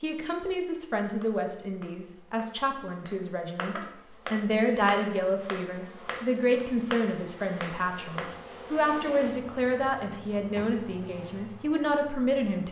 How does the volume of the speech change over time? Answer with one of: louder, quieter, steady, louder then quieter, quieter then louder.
steady.